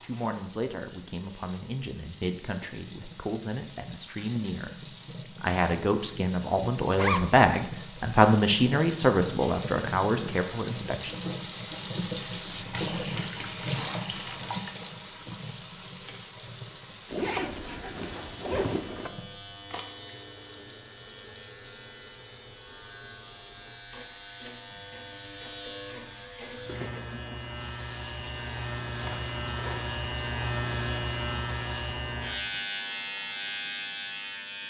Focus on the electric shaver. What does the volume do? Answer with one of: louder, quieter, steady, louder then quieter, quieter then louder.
louder.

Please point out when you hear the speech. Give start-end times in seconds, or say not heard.
0.0-11.2.